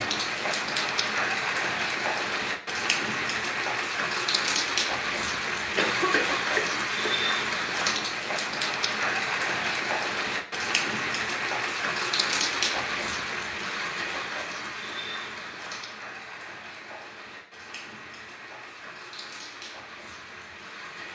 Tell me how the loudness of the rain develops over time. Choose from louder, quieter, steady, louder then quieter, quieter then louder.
quieter.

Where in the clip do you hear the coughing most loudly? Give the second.
6 s.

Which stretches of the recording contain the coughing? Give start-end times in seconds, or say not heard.
5.8-7.3.